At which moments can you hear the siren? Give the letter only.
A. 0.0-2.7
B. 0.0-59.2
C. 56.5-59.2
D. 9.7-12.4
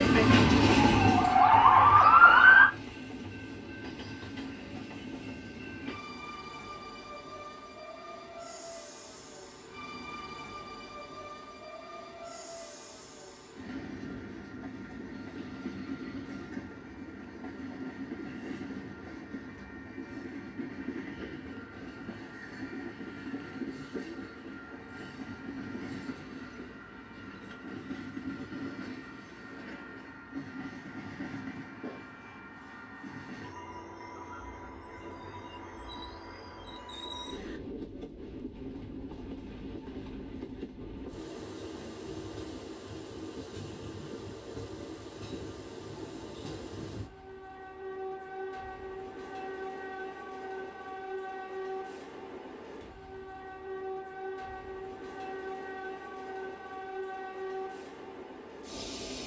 A.